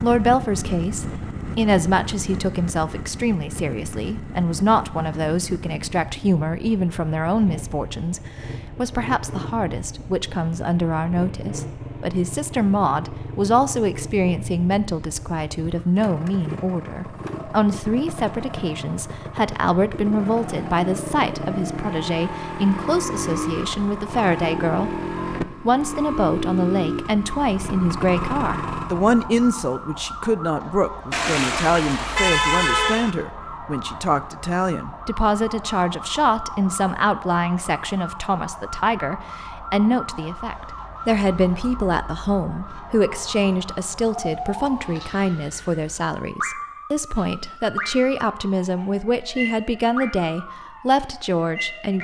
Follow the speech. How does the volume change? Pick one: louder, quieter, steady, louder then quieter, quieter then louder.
steady.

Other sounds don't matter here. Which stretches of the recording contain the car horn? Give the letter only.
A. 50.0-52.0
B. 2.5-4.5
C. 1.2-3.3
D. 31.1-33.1
D.